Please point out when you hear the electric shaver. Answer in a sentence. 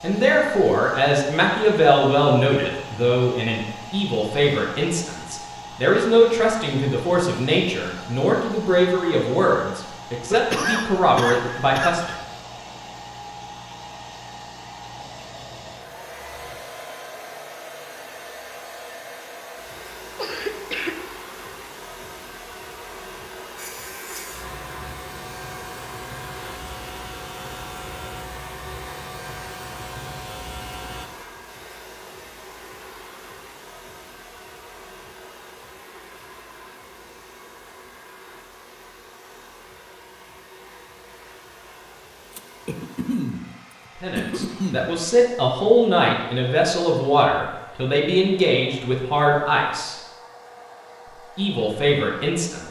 You can hear the electric shaver from 23.6 to 31.1 s.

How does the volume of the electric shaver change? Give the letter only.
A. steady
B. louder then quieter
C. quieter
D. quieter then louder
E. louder
A.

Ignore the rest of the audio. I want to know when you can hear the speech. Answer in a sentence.
You can hear the speech from 0.0 to 12.2 s, from 44.0 to 50.0 s and from 51.4 to 52.6 s.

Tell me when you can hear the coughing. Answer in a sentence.
The coughing can be heard from 10.3 to 12.2 s, from 20.1 to 20.9 s, from 42.4 to 43.5 s and from 44.1 to 44.9 s.